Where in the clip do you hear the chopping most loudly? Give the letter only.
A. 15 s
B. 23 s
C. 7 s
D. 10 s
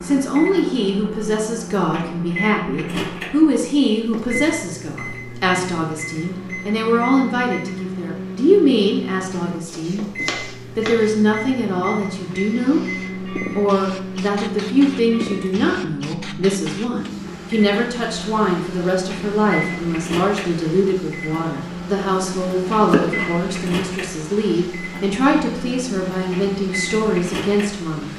B.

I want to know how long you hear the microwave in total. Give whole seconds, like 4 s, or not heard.
28 s.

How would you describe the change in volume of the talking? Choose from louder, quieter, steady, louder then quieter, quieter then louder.
steady.